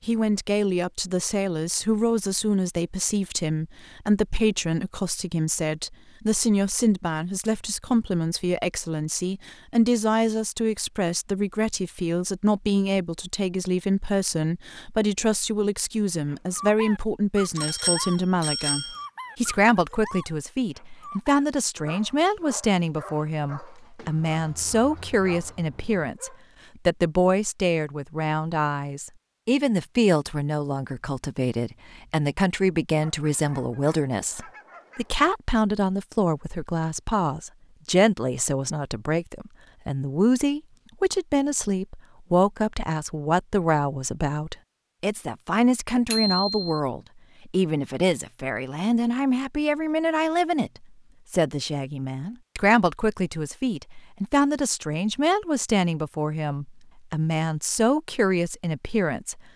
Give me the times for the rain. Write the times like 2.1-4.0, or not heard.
not heard.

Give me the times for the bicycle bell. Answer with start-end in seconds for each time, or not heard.
17.6-19.0, 46.1-46.7.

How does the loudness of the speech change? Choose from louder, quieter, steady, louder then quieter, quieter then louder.
steady.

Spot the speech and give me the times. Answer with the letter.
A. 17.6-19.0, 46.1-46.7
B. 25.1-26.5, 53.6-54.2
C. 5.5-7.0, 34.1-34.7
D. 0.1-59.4
D.